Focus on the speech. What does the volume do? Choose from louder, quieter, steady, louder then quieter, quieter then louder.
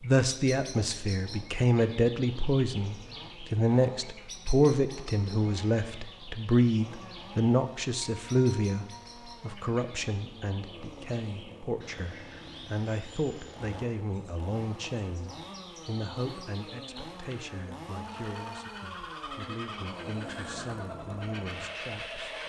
quieter.